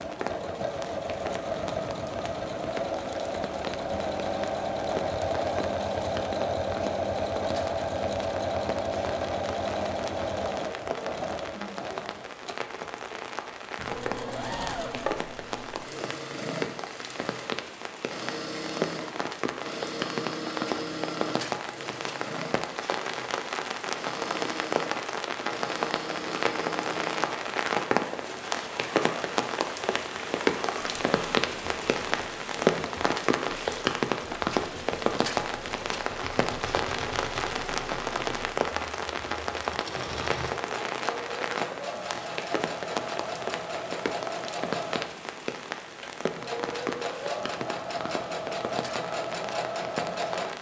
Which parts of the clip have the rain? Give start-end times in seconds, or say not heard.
0.0-50.5.